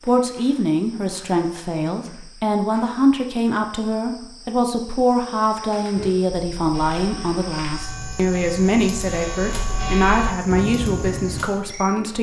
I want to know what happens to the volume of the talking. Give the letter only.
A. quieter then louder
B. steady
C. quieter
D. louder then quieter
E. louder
B.